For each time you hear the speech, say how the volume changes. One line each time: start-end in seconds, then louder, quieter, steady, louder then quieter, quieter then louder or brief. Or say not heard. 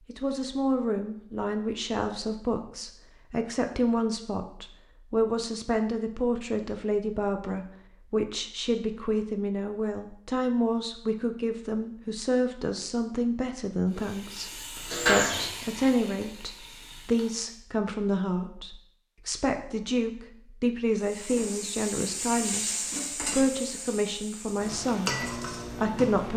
0.1-26.3 steady.